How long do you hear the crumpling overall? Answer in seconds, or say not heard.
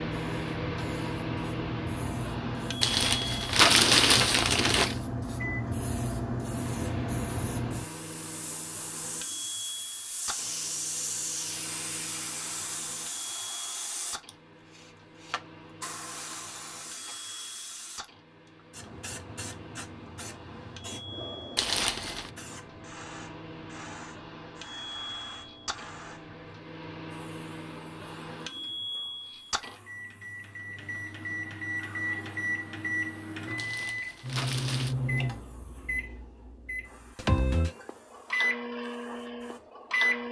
4 s.